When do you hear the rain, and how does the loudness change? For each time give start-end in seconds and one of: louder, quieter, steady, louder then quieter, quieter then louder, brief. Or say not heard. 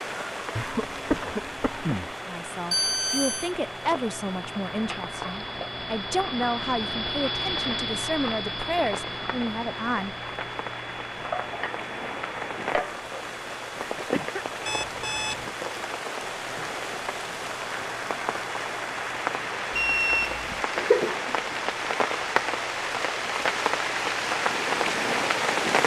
0.0-25.8 louder.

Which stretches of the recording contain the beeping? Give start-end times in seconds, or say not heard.
2.7-3.5, 14.7-15.6, 19.7-20.6.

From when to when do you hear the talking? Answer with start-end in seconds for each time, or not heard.
2.2-10.2.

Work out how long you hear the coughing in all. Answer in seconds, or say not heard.
3 s.